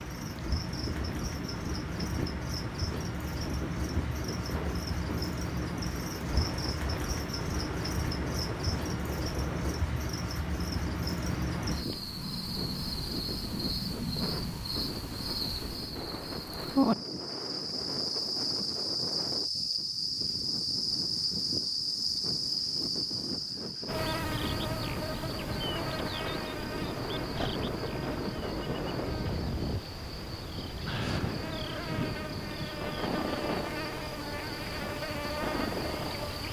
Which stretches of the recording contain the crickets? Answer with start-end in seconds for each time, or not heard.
0.0-36.4.